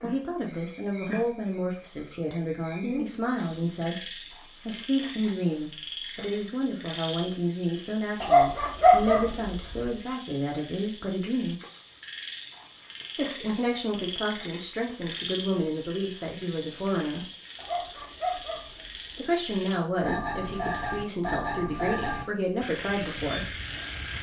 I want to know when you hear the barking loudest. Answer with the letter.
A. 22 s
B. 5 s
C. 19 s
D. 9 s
D.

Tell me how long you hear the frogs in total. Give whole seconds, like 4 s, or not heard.
24 s.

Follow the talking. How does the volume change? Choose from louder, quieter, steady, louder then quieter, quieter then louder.
steady.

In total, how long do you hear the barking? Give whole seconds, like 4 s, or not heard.
3 s.